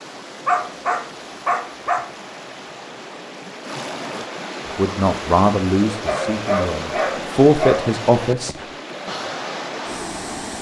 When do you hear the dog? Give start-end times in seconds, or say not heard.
0.5-2.1, 6.0-8.0.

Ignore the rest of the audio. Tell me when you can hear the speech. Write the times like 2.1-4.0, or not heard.
4.8-8.7.